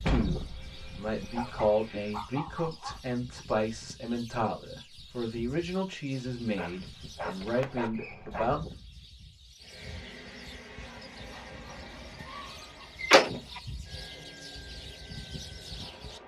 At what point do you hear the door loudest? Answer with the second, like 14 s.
13 s.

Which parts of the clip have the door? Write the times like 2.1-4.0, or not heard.
0.1-1.5, 7.4-8.5, 13.0-13.6.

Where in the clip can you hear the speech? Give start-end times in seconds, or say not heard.
0.0-8.6.